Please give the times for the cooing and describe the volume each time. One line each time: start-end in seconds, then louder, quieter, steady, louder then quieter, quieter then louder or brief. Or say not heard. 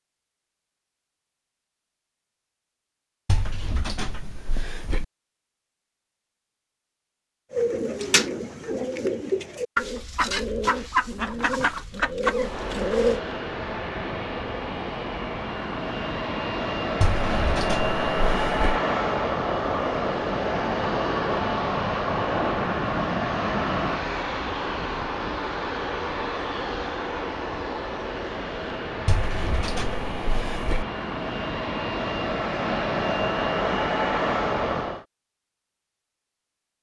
7.5-13.2 steady.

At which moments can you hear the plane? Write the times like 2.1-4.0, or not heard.
12.3-35.0.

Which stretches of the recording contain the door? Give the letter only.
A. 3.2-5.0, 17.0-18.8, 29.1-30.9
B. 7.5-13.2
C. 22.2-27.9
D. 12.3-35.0
A.